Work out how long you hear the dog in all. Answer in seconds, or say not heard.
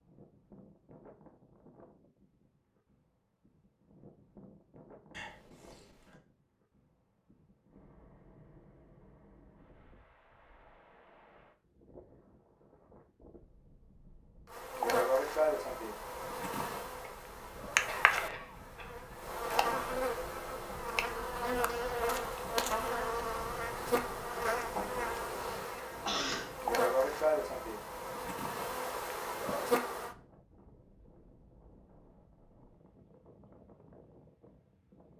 not heard.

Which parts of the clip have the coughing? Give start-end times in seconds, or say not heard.
5.1-6.2, 17.0-19.0, 26.1-26.6.